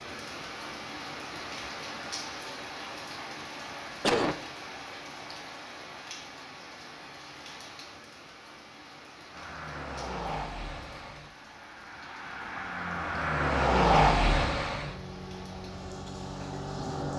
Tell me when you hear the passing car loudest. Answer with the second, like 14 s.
14 s.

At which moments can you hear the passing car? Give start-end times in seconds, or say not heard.
9.3-17.1.